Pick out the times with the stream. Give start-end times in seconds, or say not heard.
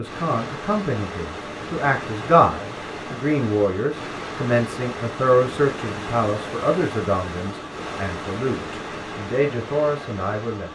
0.0-10.6.